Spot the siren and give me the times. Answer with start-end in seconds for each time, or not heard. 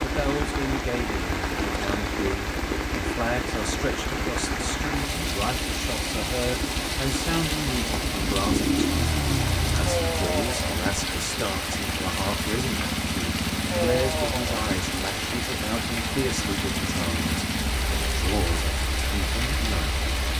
not heard.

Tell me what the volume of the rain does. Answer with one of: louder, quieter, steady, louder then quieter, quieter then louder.
steady.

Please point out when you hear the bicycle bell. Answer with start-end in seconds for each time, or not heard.
not heard.